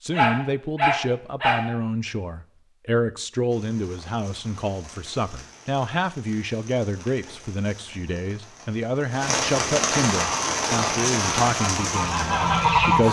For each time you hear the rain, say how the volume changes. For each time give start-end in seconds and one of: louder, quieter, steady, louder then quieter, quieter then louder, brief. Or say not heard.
3.5-13.0 louder.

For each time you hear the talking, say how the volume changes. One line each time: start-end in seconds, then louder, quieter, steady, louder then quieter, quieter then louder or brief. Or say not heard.
0.0-13.0 steady.